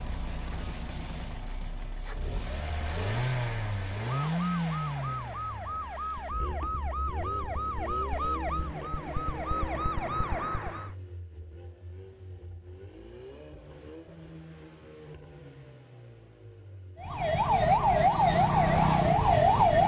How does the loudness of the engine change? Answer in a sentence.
The loudness of the engine goes down.